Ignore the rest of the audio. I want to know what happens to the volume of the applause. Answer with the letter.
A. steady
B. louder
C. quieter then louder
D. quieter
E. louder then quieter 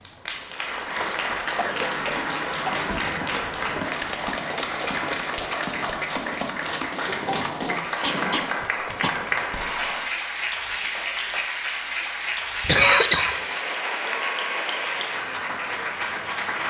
A.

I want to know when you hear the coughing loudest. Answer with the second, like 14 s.
13 s.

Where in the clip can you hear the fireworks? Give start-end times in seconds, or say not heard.
1.7-10.1.